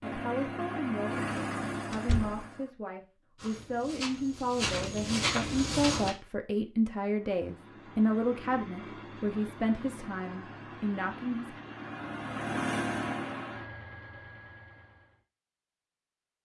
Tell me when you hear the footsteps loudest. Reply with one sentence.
The loudest moment of the footsteps is at 5 seconds.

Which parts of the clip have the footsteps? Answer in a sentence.
The footsteps can be heard from 3.4 to 6.2 s.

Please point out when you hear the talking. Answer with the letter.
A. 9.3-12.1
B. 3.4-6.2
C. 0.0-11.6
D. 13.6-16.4
C.